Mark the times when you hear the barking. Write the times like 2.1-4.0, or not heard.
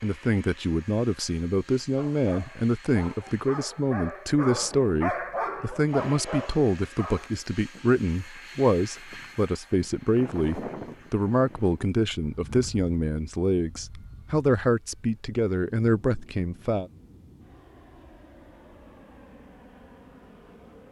1.9-7.3.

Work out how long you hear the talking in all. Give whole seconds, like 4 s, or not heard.
17 s.